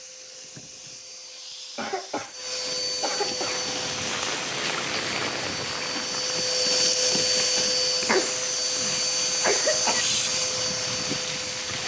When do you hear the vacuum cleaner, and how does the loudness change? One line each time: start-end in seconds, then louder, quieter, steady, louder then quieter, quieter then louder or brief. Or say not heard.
0.0-11.8 louder.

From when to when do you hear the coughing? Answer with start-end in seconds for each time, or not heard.
1.8-3.6, 8.0-10.1.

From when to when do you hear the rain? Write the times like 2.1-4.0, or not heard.
3.4-11.8.